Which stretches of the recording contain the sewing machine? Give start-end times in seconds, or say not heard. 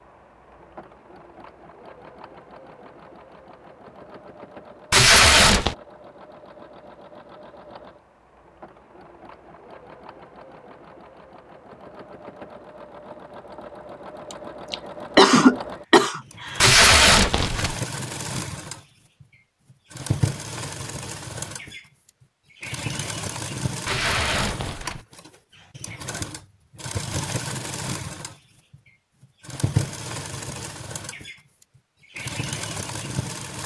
0.0-33.6.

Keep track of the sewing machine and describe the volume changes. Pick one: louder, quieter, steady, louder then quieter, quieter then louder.
louder.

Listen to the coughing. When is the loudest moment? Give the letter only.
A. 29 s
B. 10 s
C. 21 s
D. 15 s
D.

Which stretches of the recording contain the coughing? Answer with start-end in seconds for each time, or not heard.
14.3-16.6.